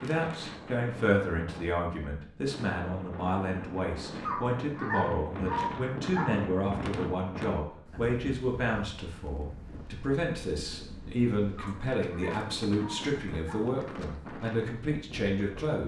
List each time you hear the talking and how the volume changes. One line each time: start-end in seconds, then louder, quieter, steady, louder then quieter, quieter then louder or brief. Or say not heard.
0.0-15.8 steady.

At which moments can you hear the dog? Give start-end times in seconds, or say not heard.
4.2-6.2, 11.6-13.6.